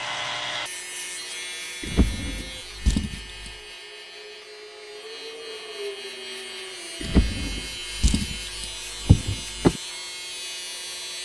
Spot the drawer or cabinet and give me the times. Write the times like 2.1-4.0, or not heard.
1.8-3.5, 7.0-9.8.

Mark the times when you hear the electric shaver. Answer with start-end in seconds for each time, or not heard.
0.0-11.2.